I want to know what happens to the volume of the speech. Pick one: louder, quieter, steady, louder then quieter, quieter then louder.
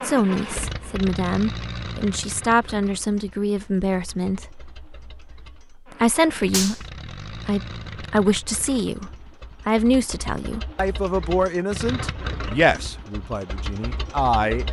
steady.